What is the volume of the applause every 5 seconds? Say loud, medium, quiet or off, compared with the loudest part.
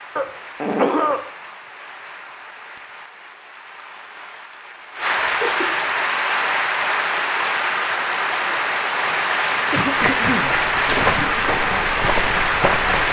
quiet, loud, loud.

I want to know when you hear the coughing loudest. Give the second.
1 s.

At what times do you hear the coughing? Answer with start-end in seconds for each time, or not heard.
0.1-1.2, 5.2-5.8, 9.7-11.4.